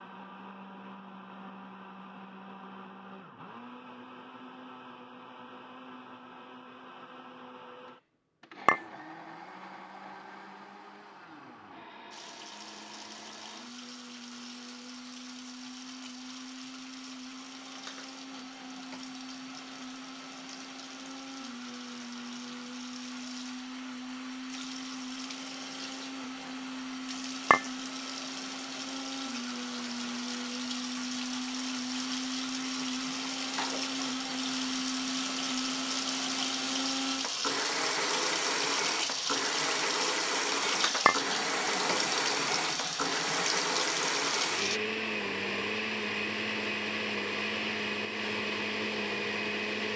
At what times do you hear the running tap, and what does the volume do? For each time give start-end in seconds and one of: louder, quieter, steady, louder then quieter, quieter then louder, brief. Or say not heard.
12.1-44.8 louder.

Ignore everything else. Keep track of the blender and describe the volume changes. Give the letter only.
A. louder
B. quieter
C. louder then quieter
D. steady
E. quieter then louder
A.